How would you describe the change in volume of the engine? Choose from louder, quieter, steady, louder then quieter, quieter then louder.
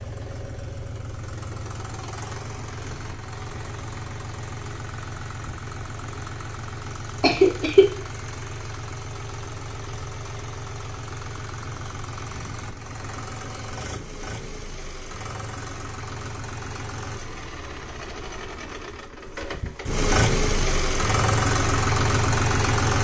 louder.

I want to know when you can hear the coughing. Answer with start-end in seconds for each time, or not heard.
7.2-7.8.